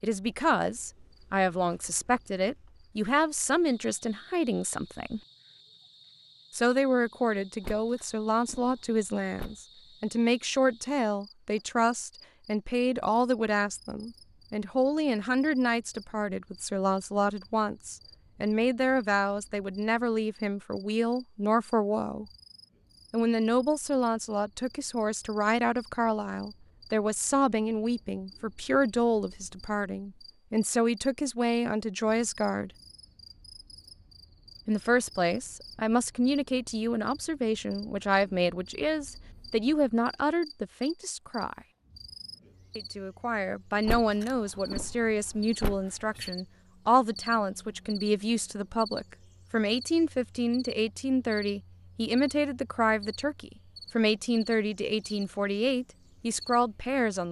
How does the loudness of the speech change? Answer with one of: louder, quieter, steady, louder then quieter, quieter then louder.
steady.